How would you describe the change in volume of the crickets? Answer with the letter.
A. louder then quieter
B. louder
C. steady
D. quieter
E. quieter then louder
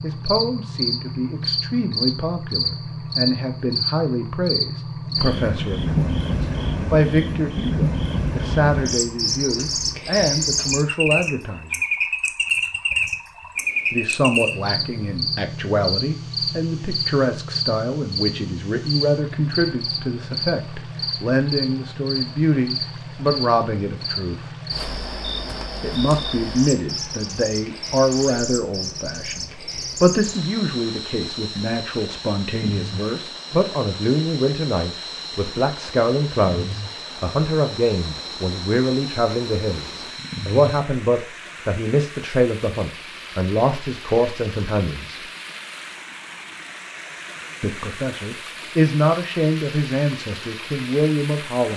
D.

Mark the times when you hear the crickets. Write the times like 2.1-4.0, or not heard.
0.0-40.8.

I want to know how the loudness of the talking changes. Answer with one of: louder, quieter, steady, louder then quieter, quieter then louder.
steady.